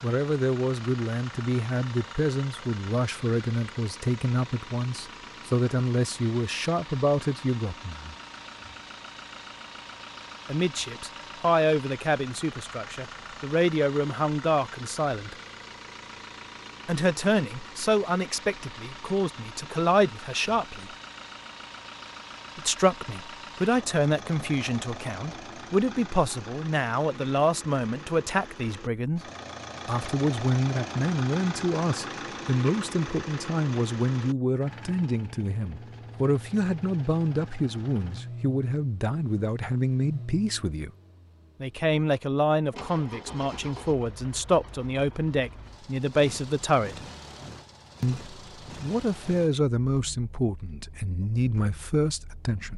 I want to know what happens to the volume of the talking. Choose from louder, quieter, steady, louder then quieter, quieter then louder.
steady.